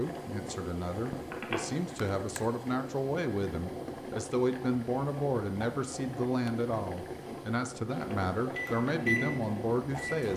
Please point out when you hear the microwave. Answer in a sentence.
You can hear the microwave from 8.5 to 10.3 s.